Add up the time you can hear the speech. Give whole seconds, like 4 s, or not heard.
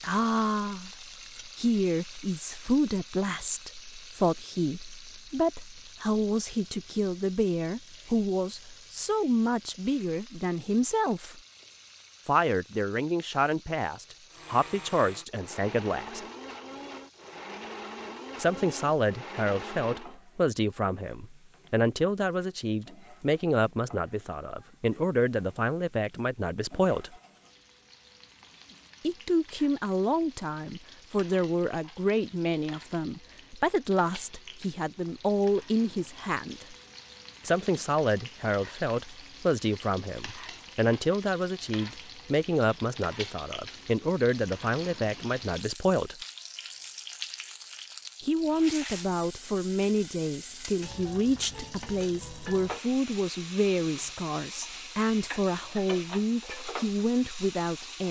50 s.